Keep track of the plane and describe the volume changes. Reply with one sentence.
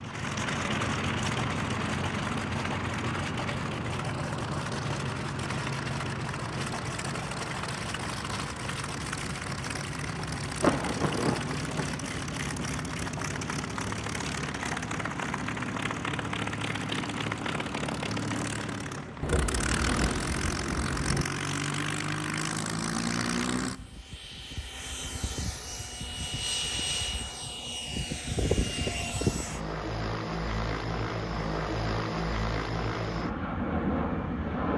The loudness of the plane stays about the same.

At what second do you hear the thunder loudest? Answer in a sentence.
The loudest moment of the thunder is at 11 seconds.